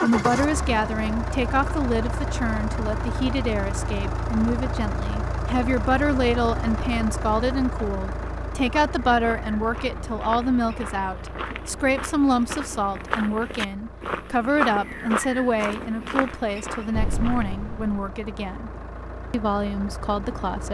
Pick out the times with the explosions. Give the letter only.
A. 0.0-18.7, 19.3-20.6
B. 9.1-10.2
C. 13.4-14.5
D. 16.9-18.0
D.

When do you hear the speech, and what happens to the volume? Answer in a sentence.
The speech can be heard from 0.0 to 18.7 s, at a steady volume; and briefly from 19.3 to 20.6 s.